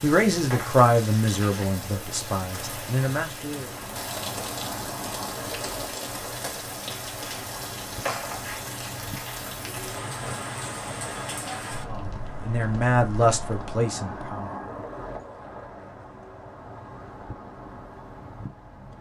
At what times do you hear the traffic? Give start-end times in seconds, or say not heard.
3.6-18.9.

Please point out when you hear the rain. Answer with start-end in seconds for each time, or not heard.
0.0-13.8.